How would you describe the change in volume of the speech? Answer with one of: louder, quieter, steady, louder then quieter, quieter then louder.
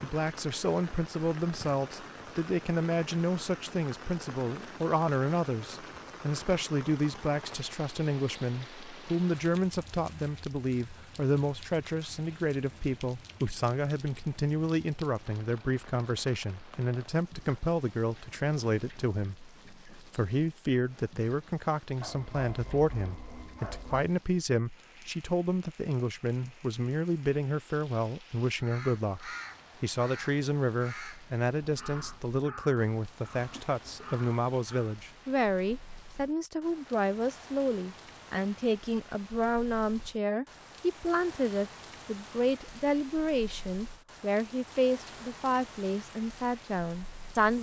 steady.